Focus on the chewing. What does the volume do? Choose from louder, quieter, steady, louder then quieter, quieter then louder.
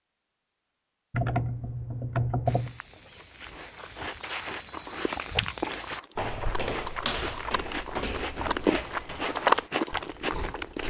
louder.